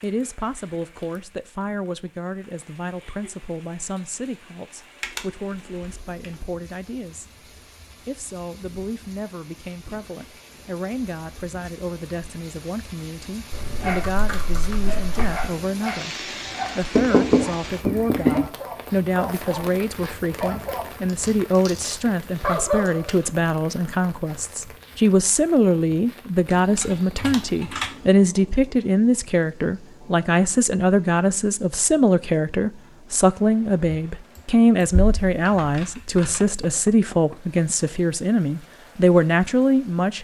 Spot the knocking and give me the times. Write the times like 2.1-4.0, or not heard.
16.9-18.5, 36.4-37.4.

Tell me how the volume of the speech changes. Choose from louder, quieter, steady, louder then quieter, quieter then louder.
louder.